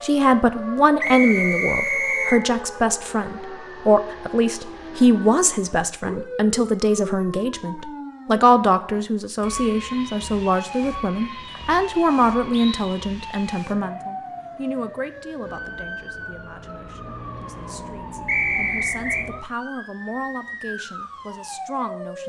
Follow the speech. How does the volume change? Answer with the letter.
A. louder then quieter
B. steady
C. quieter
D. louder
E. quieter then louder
C.